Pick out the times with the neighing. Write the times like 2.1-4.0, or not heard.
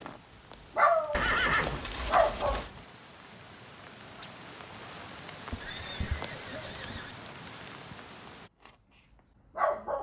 1.1-2.7, 5.5-7.2.